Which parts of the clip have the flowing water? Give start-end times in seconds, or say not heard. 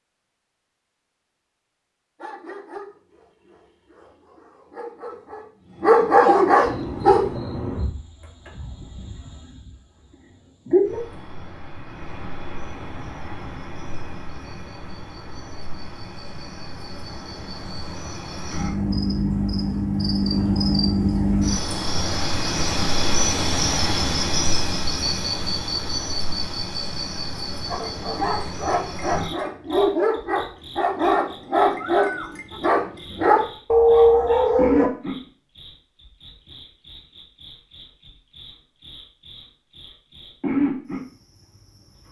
not heard.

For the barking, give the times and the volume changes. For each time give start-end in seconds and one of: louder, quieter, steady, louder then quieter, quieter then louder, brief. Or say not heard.
2.2-7.2 quieter then louder
27.7-34.9 louder.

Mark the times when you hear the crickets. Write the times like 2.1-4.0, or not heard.
6.6-42.0.